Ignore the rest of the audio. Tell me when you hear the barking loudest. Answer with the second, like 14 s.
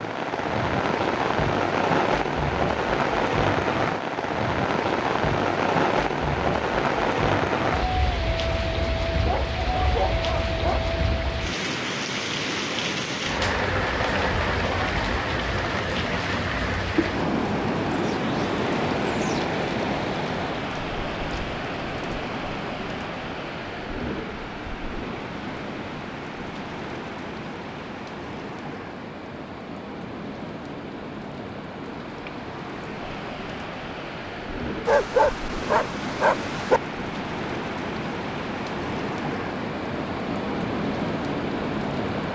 35 s.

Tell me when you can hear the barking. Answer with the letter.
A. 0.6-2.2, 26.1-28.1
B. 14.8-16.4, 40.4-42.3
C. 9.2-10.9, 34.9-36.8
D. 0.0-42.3
C.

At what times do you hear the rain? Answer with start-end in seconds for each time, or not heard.
0.0-42.3.